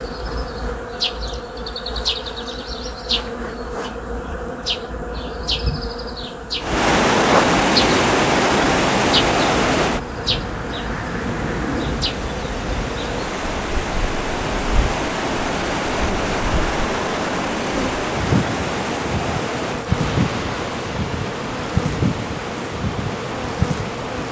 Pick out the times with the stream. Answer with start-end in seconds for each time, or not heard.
6.6-24.2.